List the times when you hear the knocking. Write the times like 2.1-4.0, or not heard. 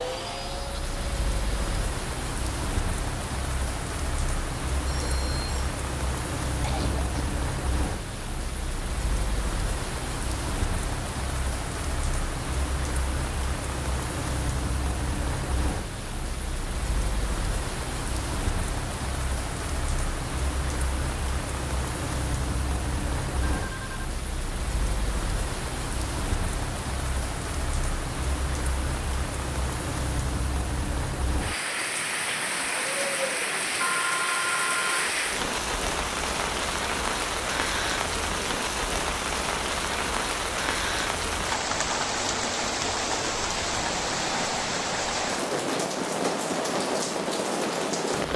not heard.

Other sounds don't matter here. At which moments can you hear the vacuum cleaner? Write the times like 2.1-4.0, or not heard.
0.0-1.9.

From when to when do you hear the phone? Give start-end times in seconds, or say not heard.
4.8-5.8, 23.6-24.0, 33.8-35.1.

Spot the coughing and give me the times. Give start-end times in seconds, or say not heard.
6.5-7.4.